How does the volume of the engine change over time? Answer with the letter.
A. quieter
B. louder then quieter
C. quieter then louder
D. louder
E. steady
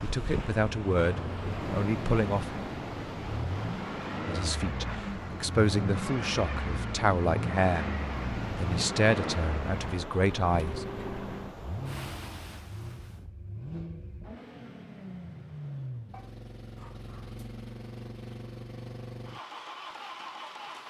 A.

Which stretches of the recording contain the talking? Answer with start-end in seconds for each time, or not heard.
0.0-2.5, 4.2-7.9, 8.6-10.8.